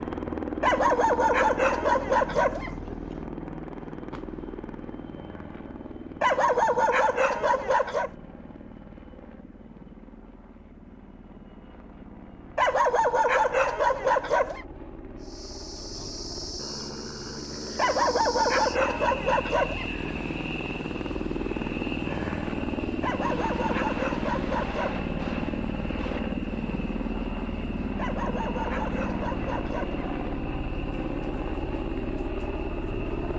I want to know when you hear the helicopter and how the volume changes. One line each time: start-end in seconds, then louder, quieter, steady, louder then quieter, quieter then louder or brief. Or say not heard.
0.0-33.3 quieter then louder.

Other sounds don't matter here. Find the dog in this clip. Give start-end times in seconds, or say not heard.
0.6-3.0, 6.2-8.1, 12.6-14.7, 17.8-20.1, 23.0-25.1, 27.9-30.1.